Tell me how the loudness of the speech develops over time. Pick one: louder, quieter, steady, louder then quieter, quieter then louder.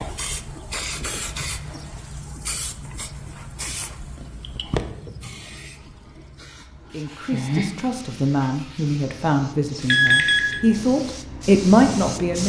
louder.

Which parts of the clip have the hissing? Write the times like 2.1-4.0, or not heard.
0.0-12.4.